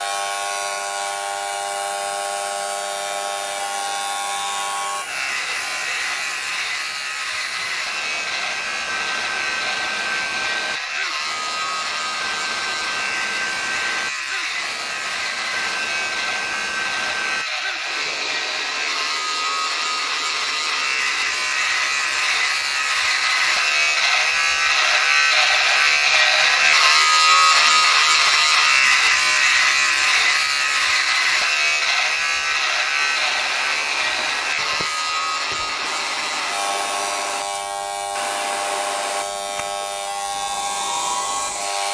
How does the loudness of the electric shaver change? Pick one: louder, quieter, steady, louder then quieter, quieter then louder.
louder then quieter.